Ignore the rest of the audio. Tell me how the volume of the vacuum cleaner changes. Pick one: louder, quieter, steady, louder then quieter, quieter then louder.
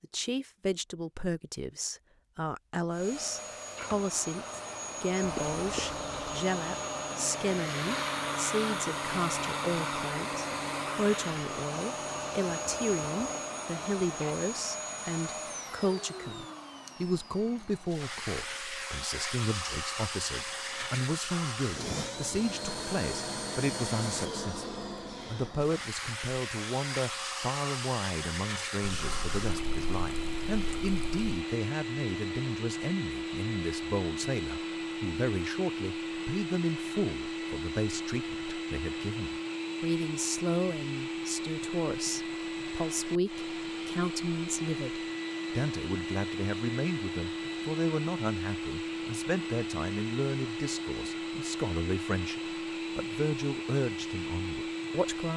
steady.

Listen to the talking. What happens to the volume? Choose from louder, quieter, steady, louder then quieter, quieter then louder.
steady.